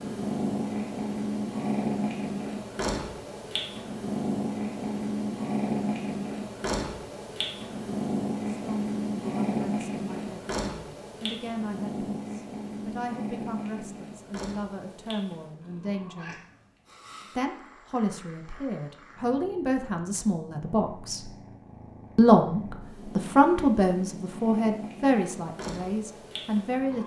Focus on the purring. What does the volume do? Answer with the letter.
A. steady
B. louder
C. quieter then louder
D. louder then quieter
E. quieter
C.